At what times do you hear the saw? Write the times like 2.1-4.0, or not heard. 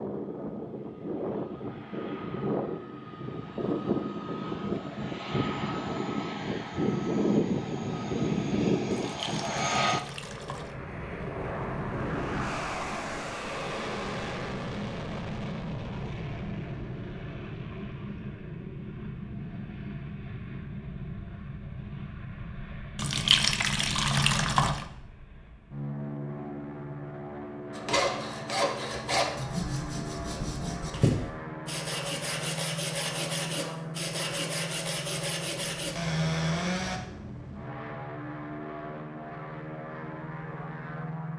27.7-37.0.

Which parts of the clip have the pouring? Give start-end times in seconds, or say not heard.
9.0-10.8, 22.9-24.9.